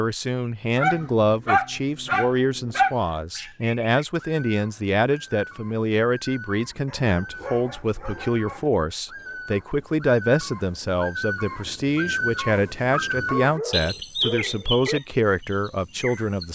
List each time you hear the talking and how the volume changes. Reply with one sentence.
The talking can be heard from 0.0 to 16.4 s, at a steady volume.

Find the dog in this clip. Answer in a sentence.
You can hear the dog from 0.8 to 3.0 s, from 6.8 to 8.8 s and from 13.2 to 15.0 s.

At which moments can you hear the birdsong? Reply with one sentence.
The birdsong can be heard from 3.1 to 16.4 s.